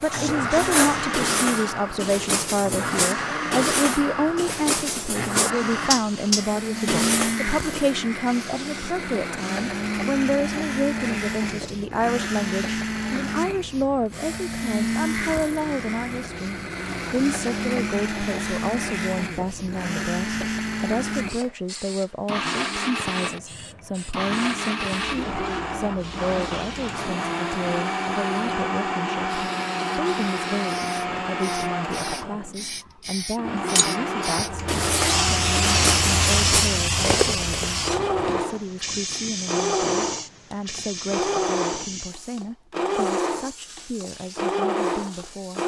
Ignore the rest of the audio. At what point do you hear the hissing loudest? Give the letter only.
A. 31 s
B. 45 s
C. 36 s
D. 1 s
C.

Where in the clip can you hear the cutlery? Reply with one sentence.
You can hear the cutlery from 0.0 to 8.0 s and from 33.8 to 37.7 s.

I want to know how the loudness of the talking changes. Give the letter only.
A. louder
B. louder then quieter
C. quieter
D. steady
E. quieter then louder
C.